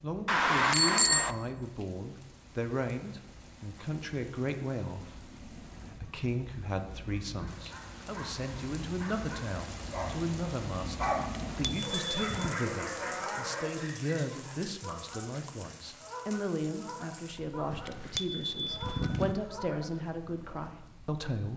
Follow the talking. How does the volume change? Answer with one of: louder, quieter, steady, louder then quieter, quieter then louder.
steady.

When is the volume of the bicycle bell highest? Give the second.
1 s.